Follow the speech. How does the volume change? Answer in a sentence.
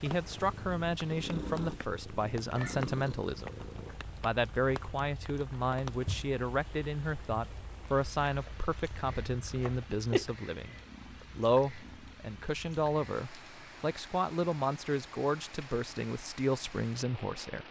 The loudness of the speech stays about the same.